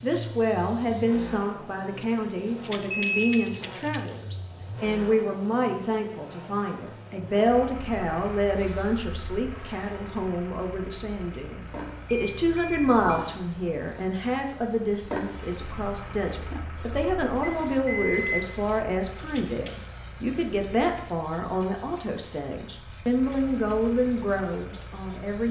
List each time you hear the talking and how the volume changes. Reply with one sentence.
The talking can be heard from 0.0 to 25.4 s, at a steady volume.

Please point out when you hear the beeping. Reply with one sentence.
The beeping can be heard from 2.9 to 3.5 s, from 12.1 to 13.2 s and from 17.4 to 18.6 s.